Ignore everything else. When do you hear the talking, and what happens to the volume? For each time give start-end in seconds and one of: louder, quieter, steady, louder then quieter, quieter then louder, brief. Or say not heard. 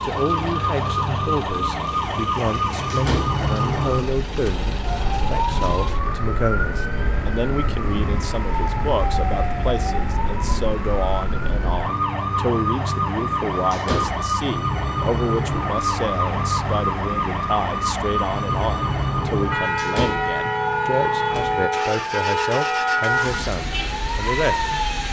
0.0-24.7 steady.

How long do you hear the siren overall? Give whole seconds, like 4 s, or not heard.
25 s.